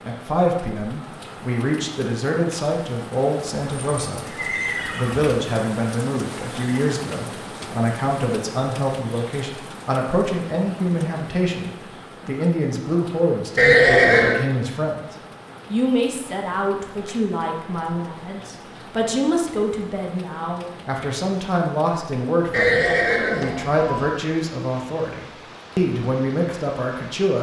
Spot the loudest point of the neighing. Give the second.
14 s.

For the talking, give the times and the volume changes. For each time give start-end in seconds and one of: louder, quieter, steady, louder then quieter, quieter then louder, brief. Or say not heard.
0.1-27.3 steady.